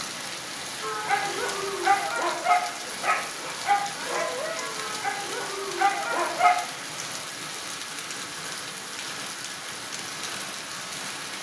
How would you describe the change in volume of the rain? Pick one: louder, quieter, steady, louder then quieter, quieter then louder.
steady.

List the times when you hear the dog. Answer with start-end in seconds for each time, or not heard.
0.8-6.6.